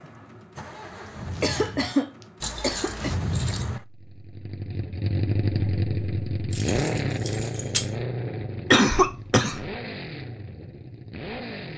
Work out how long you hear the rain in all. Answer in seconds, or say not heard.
not heard.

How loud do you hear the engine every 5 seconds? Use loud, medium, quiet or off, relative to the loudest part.
medium, loud, medium.